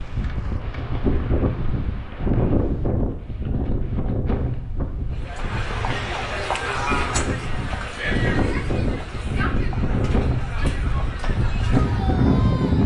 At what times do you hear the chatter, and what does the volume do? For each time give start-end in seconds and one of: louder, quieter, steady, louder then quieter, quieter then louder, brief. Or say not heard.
5.1-12.8 quieter.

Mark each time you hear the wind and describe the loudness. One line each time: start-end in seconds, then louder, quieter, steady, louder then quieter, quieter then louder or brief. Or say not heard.
0.0-12.8 quieter then louder.